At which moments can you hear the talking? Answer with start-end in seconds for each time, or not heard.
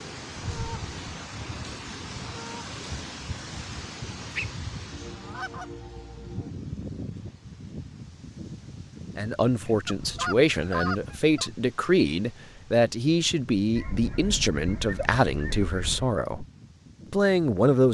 9.2-16.4, 17.1-17.8.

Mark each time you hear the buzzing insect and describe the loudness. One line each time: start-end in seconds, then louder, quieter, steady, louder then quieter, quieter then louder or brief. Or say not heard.
not heard.